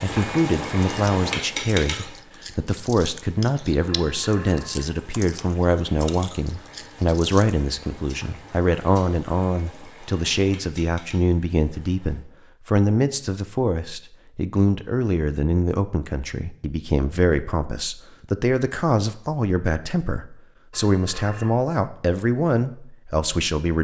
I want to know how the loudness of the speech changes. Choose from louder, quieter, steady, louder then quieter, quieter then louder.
steady.